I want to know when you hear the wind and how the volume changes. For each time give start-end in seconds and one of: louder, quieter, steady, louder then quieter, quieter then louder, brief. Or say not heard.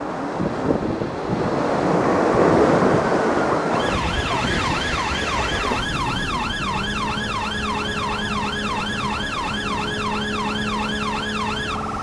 0.0-11.9 quieter.